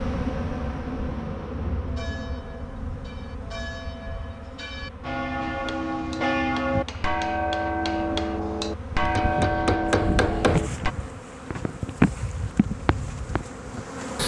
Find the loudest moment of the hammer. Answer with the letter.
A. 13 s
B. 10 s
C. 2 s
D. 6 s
B.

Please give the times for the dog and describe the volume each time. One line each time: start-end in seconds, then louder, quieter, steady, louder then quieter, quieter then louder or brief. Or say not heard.
not heard.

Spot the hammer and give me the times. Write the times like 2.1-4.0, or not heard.
5.5-10.6.